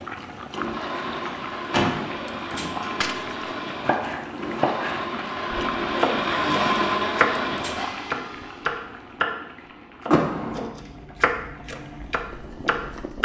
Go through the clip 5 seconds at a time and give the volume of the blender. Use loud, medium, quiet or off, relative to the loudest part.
medium, loud, off.